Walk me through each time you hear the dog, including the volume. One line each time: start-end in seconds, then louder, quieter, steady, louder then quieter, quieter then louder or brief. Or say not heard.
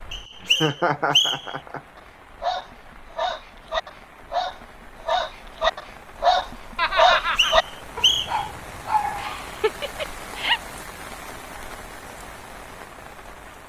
1.9-9.6 louder then quieter.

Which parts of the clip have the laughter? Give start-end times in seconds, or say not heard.
0.4-1.8, 6.8-7.5, 9.2-10.6.